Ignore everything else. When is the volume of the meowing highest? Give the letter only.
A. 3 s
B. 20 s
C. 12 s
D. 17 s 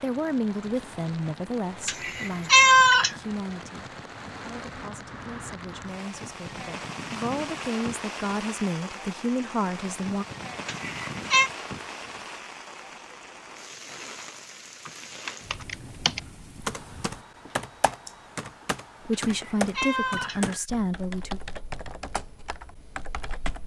A.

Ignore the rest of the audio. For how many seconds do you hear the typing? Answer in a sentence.
The typing can be heard for 9 seconds in total.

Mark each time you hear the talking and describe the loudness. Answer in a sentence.
The talking can be heard from 0.0 to 10.2 s, getting quieter then louder; and briefly from 19.1 to 21.4 s.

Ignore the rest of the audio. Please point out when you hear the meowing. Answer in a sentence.
You can hear the meowing from 1.9 to 3.1 s, from 10.7 to 11.5 s and from 19.1 to 20.6 s.